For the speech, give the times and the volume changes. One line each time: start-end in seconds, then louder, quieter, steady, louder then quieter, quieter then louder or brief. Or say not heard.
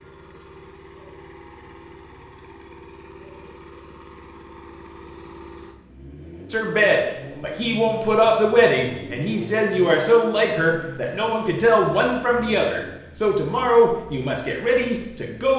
6.5-15.5 steady.